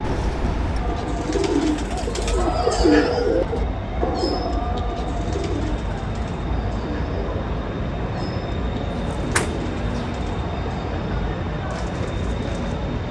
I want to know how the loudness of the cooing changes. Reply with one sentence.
The volume of the cooing goes down.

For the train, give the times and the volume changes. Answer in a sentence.
You can hear the train from 0.0 to 13.0 s, at a steady volume.